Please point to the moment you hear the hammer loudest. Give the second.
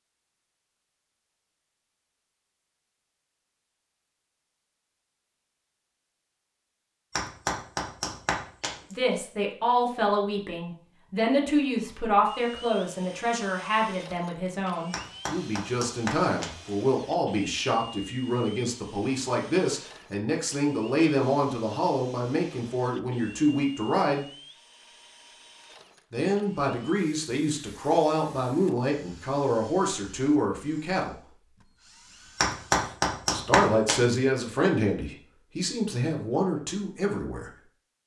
33 s.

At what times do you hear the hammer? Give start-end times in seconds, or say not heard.
7.1-8.9, 14.9-16.7, 32.4-34.2.